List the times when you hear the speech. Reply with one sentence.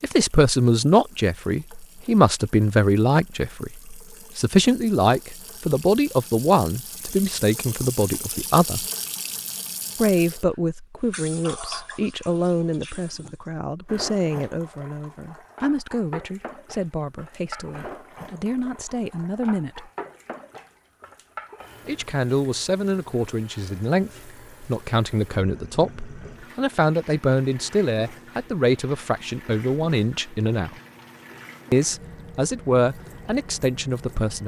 You can hear the speech from 0.0 to 8.8 s, from 9.9 to 19.9 s, from 21.9 to 30.8 s and from 31.7 to 34.4 s.